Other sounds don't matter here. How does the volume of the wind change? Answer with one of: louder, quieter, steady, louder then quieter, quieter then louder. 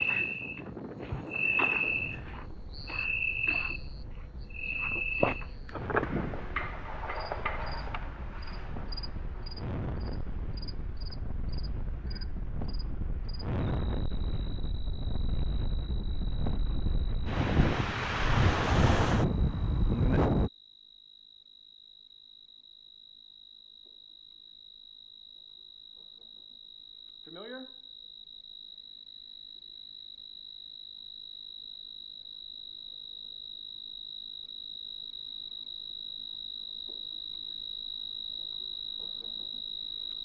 louder.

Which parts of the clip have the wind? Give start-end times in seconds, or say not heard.
0.0-20.5.